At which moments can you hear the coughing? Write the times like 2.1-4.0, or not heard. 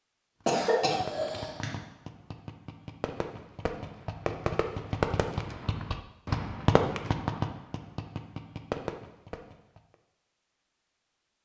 0.5-1.7.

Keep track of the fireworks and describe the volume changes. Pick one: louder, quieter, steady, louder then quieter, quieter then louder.
louder then quieter.